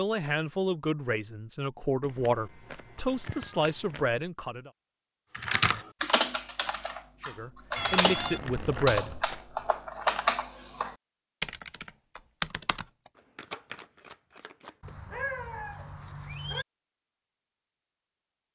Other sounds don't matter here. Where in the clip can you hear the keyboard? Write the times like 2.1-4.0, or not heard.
5.3-12.8.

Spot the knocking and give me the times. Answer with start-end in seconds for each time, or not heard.
not heard.